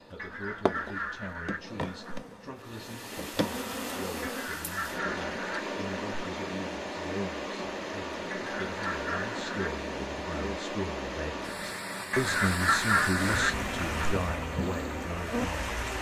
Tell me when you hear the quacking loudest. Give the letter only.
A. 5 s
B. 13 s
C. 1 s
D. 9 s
B.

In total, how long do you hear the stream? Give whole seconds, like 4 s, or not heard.
13 s.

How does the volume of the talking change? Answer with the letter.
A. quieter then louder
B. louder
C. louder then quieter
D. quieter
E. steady
B.